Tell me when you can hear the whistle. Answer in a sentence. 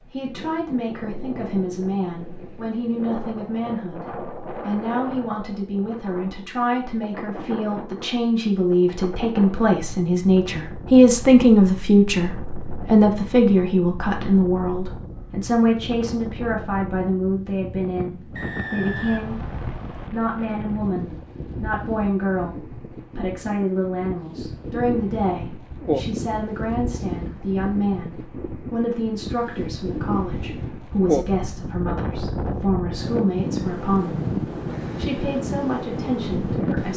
You can hear the whistle from 18.4 to 20.1 s.